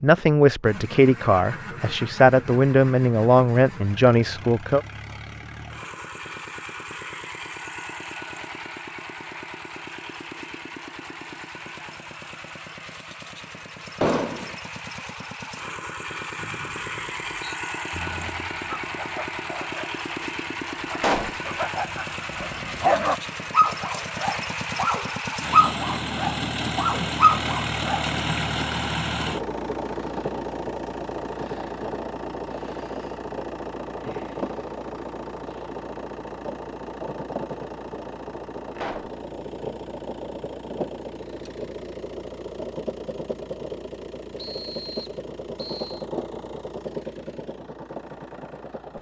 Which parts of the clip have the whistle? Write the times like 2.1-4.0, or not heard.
16.4-17.6, 44.4-46.0.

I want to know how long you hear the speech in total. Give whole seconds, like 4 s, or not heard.
5 s.